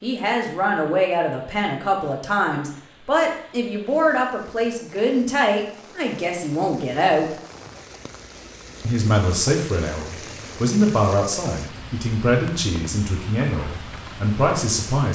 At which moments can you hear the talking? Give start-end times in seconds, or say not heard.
0.0-7.3, 8.8-15.0.